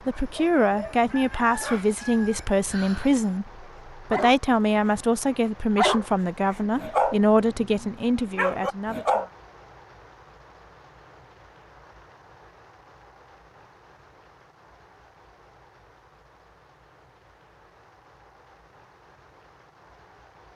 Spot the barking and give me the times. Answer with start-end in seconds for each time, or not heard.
0.1-9.2.